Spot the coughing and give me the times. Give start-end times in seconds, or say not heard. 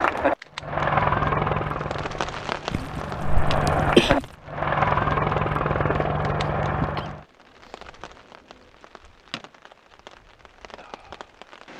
2.7-4.2, 7.0-7.8.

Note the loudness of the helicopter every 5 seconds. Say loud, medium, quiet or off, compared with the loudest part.
loud, loud, off.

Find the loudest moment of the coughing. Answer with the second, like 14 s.
4 s.